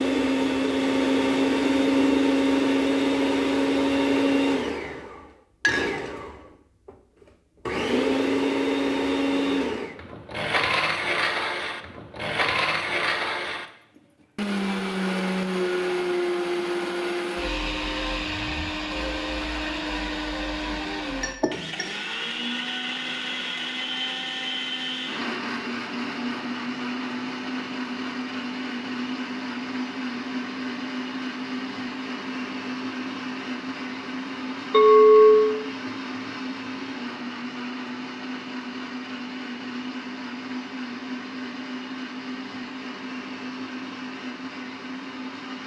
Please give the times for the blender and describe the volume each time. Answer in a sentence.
The blender can be heard from 0.0 to 45.6 s, getting quieter.